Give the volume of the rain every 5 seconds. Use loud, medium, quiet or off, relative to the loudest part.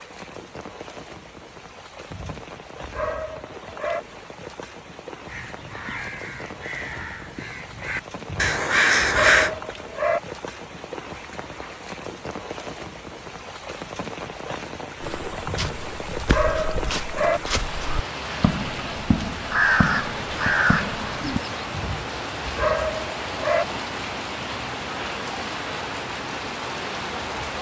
medium, medium, medium, loud, loud, loud.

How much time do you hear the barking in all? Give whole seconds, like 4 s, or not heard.
8 s.